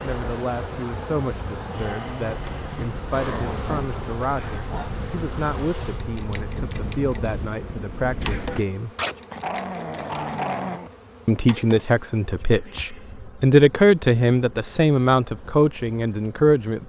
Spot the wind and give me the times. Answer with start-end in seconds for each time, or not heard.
0.0-8.7.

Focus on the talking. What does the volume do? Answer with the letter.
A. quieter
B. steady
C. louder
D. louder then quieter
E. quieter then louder
C.